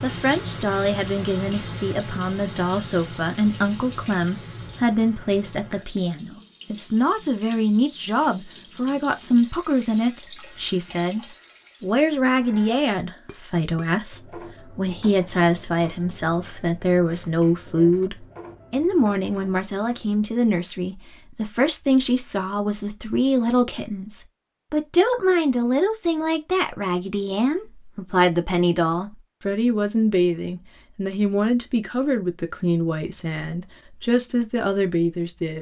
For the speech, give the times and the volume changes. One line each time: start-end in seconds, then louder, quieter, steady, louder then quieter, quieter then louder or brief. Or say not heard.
0.0-35.5 steady.